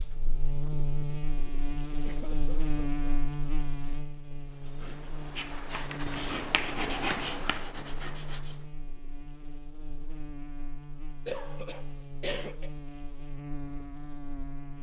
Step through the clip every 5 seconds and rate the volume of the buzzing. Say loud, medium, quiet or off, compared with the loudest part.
loud, medium, medium.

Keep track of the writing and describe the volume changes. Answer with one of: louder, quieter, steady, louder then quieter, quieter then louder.
louder then quieter.